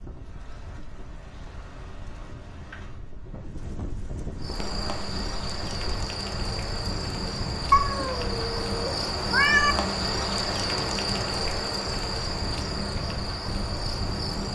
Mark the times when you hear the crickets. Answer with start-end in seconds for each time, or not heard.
4.3-14.4.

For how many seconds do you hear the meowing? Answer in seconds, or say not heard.
2 s.